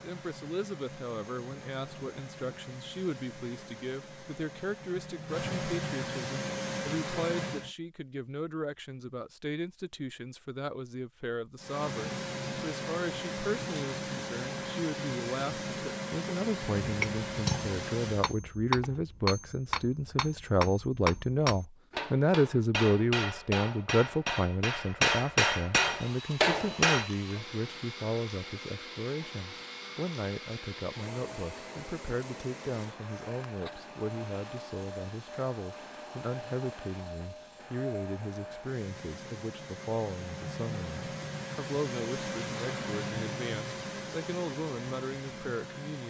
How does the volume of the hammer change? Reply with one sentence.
The volume of the hammer goes up.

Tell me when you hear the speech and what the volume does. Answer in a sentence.
The speech can be heard from 0.0 to 46.0 s, getting louder then quieter.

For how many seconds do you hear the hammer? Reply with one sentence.
The hammer can be heard for 10 seconds in total.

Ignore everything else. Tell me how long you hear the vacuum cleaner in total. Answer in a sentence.
You can hear the vacuum cleaner for 35 seconds altogether.